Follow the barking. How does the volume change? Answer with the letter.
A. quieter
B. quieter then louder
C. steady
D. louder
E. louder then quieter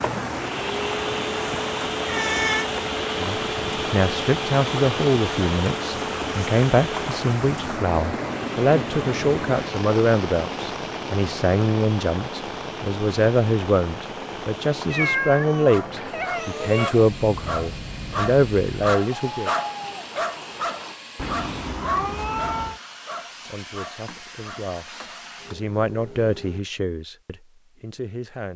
E.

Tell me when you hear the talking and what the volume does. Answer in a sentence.
You can hear the talking from 3.2 to 19.5 s, at a steady volume; and from 23.4 to 28.5 s, getting louder then quieter.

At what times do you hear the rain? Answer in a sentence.
You can hear the rain from 0.0 to 21.0 s.